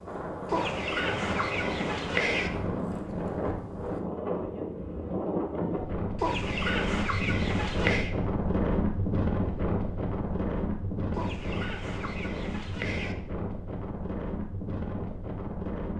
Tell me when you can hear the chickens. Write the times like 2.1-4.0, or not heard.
0.5-2.5, 6.2-8.1, 11.1-13.2.